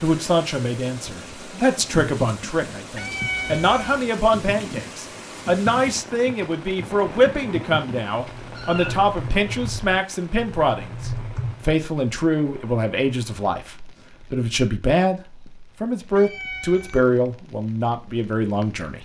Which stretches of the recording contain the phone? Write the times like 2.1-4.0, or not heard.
not heard.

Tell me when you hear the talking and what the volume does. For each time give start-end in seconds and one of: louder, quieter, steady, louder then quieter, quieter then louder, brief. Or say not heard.
0.0-18.9 steady.